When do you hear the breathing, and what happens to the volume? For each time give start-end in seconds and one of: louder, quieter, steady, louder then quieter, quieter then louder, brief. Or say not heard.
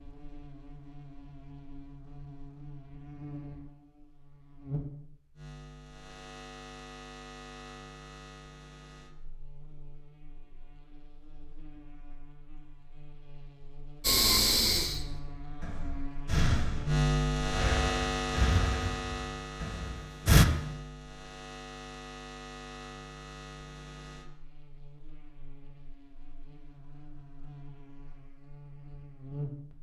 14.1-20.4 quieter.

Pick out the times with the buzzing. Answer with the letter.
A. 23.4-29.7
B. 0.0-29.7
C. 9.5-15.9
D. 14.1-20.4
B.